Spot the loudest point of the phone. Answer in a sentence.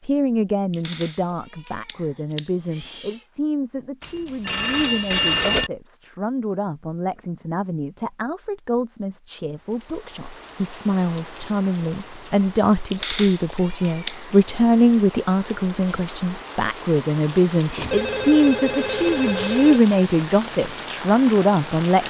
The loudest moment of the phone is at 5 seconds.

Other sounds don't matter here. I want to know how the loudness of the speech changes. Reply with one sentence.
The volume of the speech goes up.